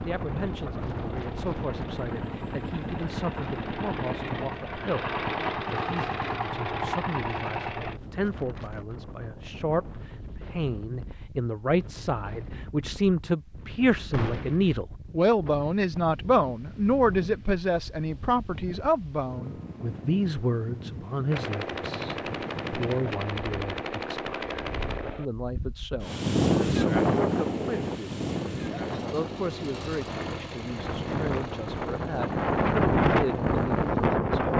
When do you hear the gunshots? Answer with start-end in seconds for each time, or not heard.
14.1-14.8, 21.3-25.2.